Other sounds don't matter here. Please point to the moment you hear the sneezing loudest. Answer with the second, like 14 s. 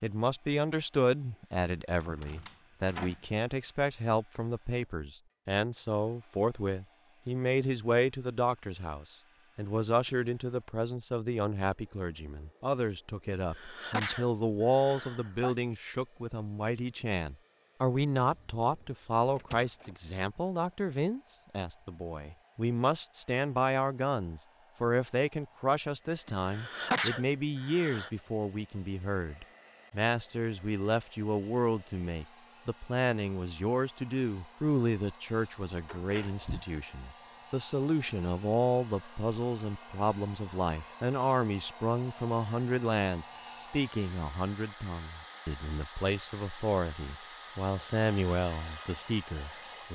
27 s.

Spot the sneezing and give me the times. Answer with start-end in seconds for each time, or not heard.
13.3-15.6, 26.2-28.1.